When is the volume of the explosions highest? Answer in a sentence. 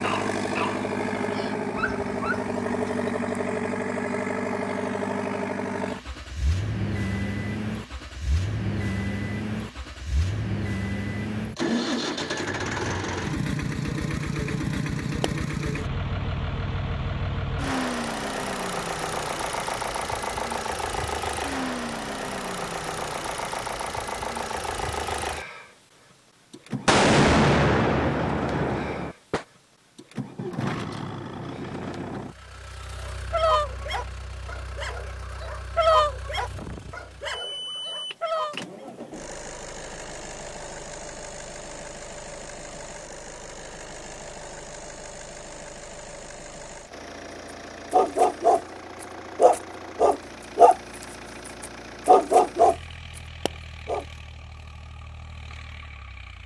The loudest moment of the explosions is at 27 seconds.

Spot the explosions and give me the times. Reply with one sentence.
You can hear the explosions from 26.9 to 29.4 s.